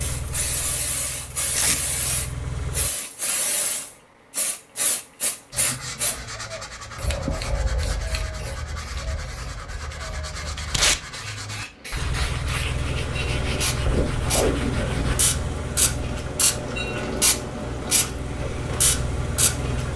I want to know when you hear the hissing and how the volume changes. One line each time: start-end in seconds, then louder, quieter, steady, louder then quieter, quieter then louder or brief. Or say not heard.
0.0-19.9 quieter then louder.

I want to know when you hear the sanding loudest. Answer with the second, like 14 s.
14 s.